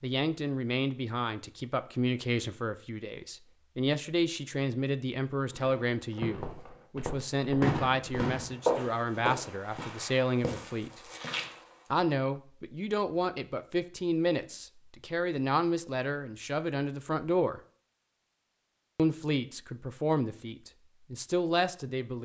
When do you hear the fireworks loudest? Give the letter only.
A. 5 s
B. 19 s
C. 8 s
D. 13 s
C.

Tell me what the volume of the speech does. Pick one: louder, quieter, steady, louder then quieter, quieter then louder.
steady.